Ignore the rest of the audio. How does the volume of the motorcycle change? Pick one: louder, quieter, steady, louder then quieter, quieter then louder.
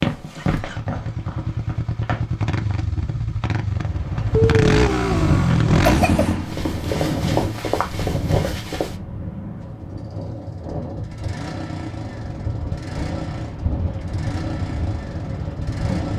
louder then quieter.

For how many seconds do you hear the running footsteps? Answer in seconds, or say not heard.
6 s.